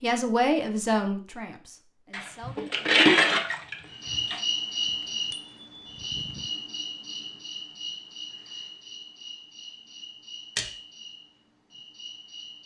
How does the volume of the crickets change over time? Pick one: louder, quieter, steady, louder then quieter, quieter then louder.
quieter.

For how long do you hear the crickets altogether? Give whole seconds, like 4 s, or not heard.
9 s.